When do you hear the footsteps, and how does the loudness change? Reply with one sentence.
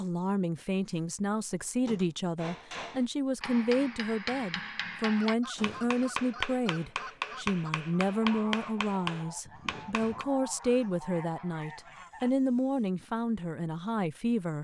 The footsteps can't be heard in this clip.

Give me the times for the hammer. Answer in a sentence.
You can hear the hammer from 2.4 to 10.2 s.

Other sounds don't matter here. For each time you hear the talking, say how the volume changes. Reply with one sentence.
You can hear the talking from 0.0 to 14.5 s, at a steady volume.